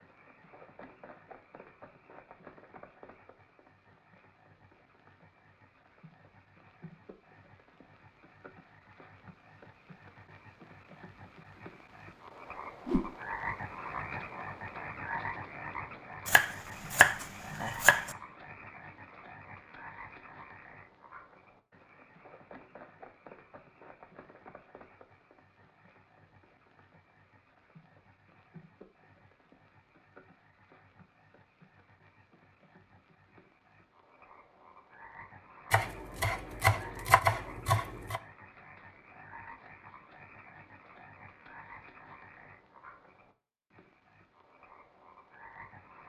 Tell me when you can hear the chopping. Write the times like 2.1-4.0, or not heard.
16.2-18.1, 35.7-38.2.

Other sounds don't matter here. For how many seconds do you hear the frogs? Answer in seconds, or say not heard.
46 s.